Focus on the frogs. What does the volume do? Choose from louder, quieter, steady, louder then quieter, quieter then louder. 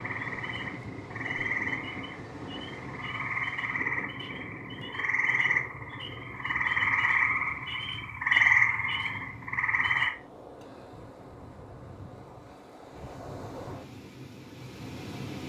louder.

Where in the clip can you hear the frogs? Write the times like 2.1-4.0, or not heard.
0.0-10.1.